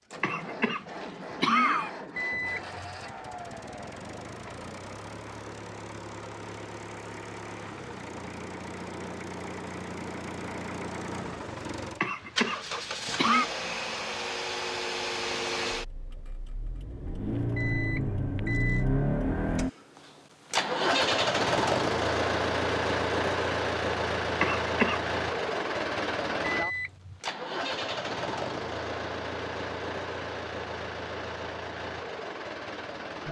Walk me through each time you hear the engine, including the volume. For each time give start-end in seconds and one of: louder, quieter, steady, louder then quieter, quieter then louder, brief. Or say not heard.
0.0-33.2 louder then quieter.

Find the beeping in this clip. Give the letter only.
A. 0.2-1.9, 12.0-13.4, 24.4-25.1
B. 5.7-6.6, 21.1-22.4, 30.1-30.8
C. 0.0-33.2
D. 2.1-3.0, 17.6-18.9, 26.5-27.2
D.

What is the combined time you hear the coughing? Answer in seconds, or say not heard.
4 s.